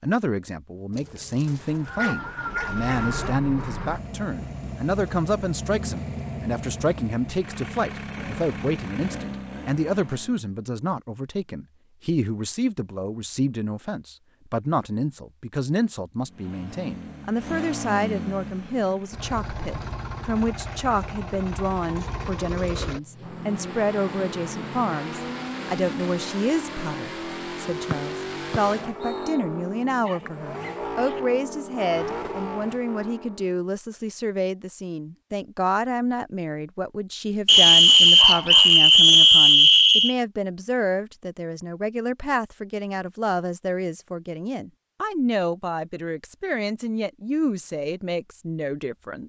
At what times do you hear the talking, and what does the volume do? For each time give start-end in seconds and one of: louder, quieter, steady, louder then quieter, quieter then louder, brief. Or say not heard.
0.0-49.2 steady.